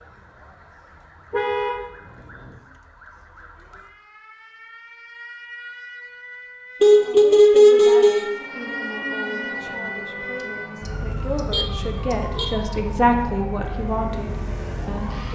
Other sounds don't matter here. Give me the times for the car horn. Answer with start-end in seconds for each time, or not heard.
1.3-1.8, 6.8-8.3, 10.8-12.4.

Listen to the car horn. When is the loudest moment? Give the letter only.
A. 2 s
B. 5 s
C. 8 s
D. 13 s
C.